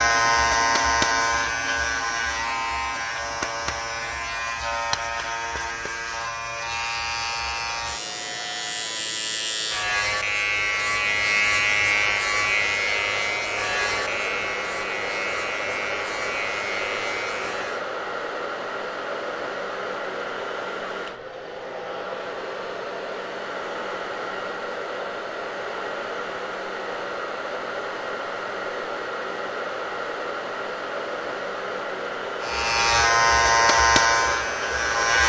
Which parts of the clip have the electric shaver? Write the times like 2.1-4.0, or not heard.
0.0-17.9, 32.4-35.2.